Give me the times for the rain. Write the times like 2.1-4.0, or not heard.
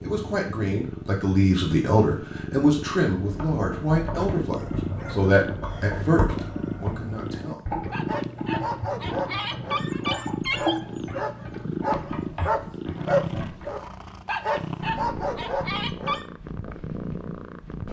not heard.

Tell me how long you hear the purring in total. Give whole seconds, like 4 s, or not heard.
18 s.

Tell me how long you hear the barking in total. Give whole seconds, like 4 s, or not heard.
12 s.